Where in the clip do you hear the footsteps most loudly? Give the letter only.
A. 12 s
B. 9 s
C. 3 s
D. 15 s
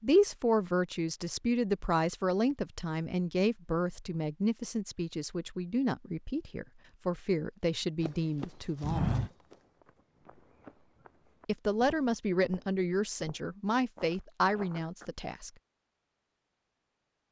B.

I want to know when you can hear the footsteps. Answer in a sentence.
The footsteps can be heard from 8.0 to 15.1 s.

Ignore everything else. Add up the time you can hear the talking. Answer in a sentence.
You can hear the talking for 13 seconds altogether.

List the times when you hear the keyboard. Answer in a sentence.
The keyboard can't be heard in this clip.